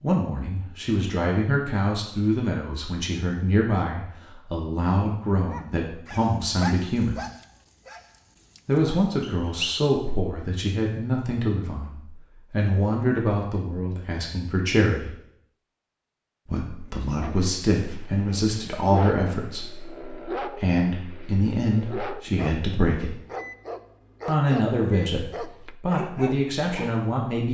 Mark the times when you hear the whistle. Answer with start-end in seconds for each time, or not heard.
9.2-9.8.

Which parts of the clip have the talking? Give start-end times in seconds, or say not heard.
0.0-7.2, 8.7-15.2, 16.4-23.1, 24.2-27.4.